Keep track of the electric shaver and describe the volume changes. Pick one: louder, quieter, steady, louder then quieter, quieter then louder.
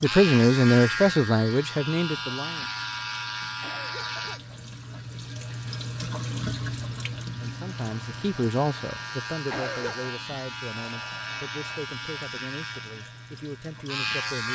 quieter then louder.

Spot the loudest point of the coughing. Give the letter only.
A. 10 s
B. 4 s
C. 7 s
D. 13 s
A.